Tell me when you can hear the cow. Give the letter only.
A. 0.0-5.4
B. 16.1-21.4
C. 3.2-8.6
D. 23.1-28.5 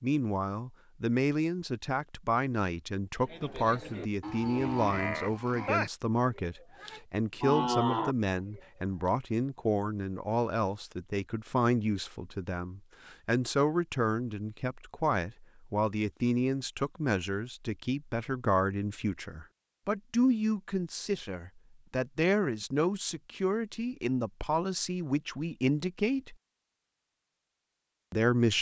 C.